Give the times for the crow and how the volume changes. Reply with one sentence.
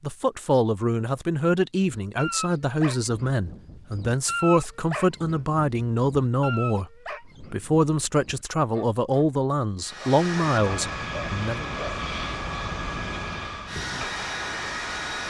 The crow can't be heard in this clip.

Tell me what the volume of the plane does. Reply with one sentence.
The volume of the plane stays about the same.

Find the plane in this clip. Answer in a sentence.
The plane can be heard from 9.8 to 15.2 s.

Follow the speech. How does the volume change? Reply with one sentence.
The loudness of the speech stays about the same.